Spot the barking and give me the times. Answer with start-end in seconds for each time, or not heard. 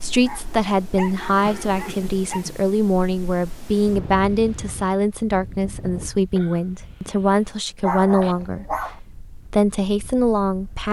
0.2-2.5, 7.8-9.0.